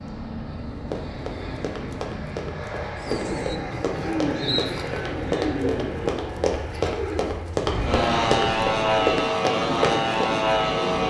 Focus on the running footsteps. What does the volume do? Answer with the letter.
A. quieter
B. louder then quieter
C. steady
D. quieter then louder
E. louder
E.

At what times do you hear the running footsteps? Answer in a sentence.
You can hear the running footsteps from 0.9 to 10.4 s.